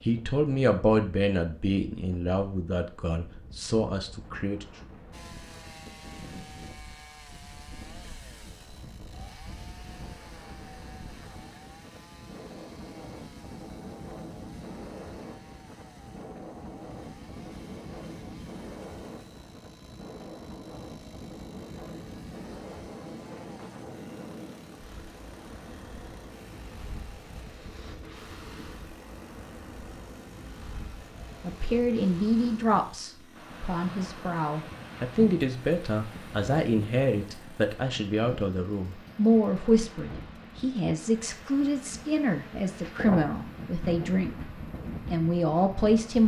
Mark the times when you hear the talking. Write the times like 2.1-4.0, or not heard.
0.0-4.7, 31.4-44.5, 45.1-46.2.